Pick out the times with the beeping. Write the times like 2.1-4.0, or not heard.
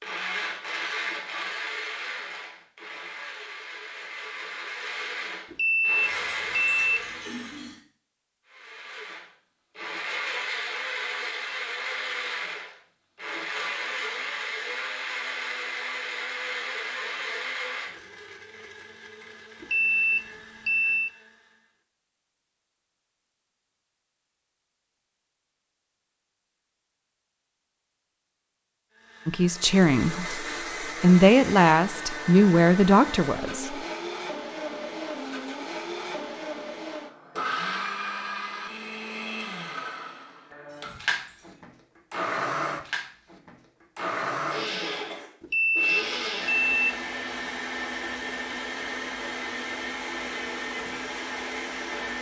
5.5-7.0, 19.6-21.1, 45.4-47.0.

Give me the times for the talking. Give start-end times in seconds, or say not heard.
29.2-33.8.